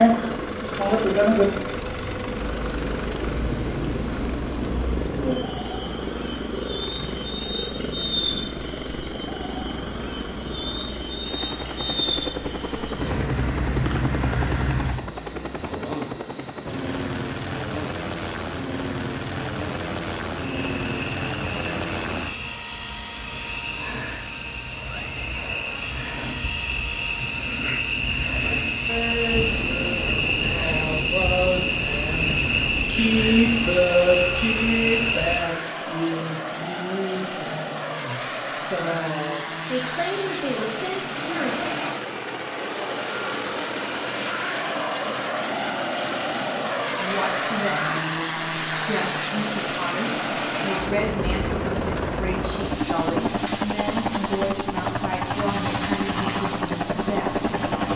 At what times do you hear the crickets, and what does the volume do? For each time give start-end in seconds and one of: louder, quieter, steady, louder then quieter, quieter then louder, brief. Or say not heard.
0.0-35.5 quieter then louder.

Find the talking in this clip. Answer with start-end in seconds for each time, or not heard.
28.9-41.7, 47.0-57.5.